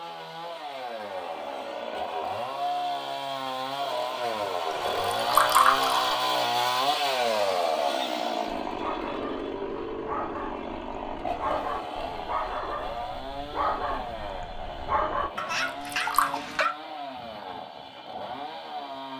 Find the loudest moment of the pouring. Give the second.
6 s.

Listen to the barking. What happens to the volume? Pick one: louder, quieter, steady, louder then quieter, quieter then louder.
louder.